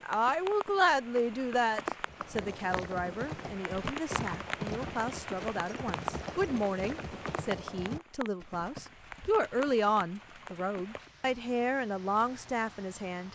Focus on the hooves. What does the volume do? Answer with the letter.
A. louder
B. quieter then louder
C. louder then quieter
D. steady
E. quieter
E.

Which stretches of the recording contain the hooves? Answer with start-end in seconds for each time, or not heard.
2.0-11.2.